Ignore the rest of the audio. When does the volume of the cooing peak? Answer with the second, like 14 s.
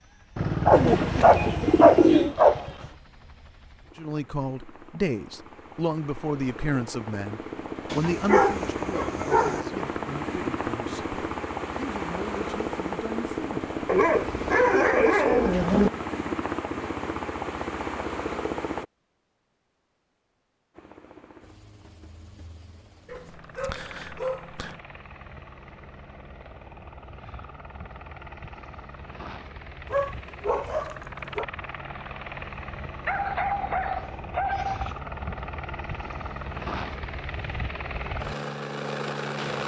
2 s.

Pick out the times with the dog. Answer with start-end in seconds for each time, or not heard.
0.3-2.9, 7.9-9.6, 13.8-15.9, 23.1-24.8, 29.9-31.4, 33.0-35.0.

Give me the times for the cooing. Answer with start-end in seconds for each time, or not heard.
0.7-2.4.